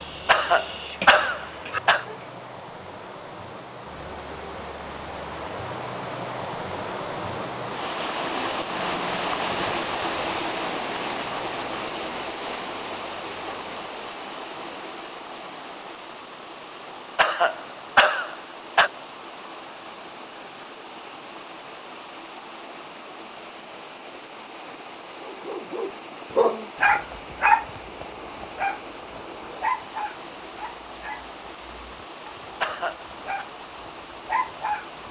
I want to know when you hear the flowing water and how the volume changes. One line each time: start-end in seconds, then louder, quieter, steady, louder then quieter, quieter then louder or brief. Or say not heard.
0.0-35.0 louder then quieter.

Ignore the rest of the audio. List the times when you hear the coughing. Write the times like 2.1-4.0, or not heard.
0.2-2.0, 17.1-18.9, 32.6-33.5.